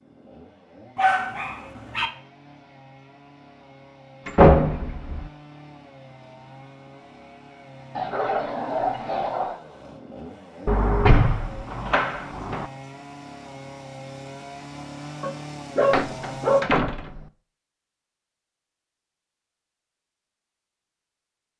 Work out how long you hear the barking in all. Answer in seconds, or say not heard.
4 s.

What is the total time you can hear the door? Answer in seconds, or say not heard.
4 s.